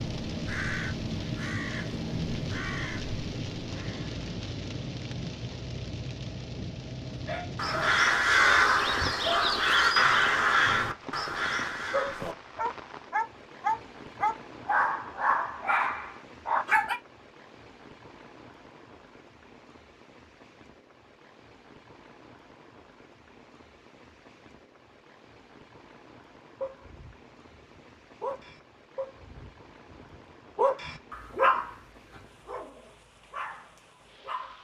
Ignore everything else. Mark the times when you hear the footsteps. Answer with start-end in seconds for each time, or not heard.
not heard.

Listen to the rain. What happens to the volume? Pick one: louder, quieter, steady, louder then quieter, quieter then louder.
quieter.